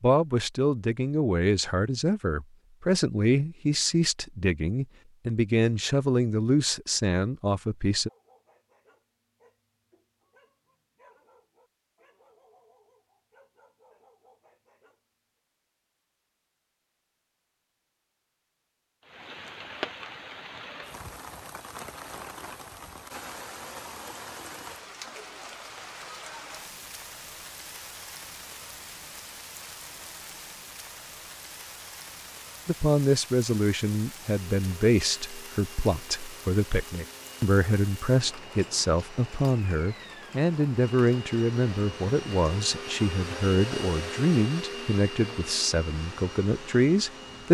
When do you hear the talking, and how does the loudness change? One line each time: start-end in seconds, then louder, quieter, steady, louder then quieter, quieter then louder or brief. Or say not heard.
0.0-8.1 steady
32.6-47.4 steady.